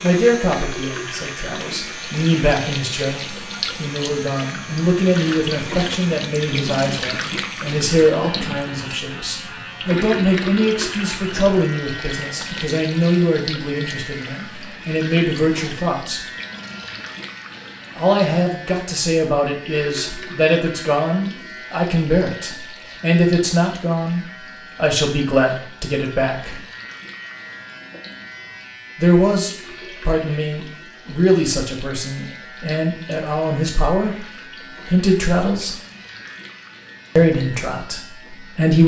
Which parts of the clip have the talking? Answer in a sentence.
The talking can be heard from 0.0 to 16.2 s, from 17.9 to 26.6 s, from 28.9 to 35.8 s and from 37.1 to 38.8 s.